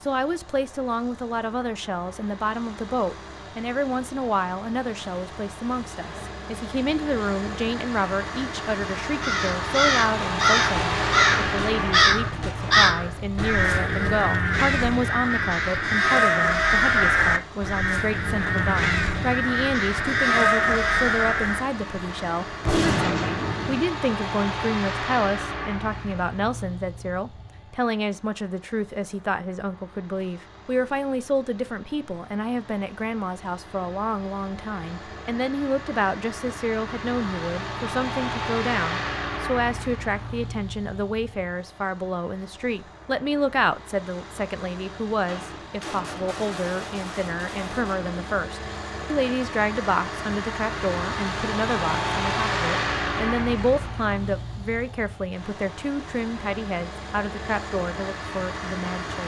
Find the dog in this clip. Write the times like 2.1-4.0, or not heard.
not heard.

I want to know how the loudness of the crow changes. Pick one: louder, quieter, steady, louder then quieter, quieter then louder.
steady.